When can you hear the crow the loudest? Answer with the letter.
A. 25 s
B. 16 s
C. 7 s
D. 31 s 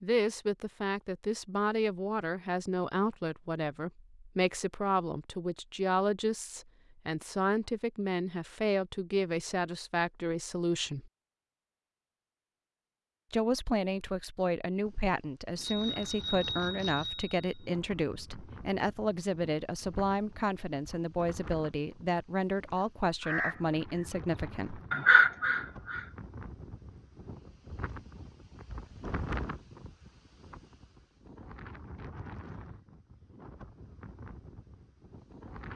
A.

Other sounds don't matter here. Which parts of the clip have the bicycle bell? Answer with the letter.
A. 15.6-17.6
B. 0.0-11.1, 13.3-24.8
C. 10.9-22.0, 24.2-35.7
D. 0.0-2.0
A.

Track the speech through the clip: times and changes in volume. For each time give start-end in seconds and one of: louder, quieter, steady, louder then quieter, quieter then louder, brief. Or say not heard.
0.0-11.1 steady
13.3-24.8 steady.